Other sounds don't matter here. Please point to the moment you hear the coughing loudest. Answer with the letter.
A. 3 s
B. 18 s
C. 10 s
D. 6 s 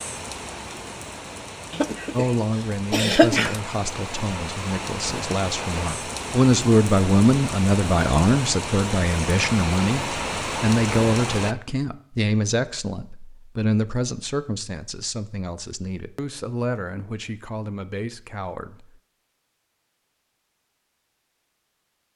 A.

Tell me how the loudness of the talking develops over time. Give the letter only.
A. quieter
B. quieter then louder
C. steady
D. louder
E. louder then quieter
E.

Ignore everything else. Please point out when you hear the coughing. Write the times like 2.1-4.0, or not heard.
1.7-3.6.